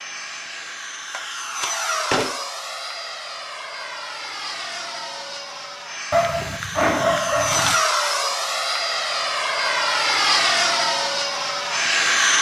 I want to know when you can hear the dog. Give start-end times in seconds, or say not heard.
6.1-7.8.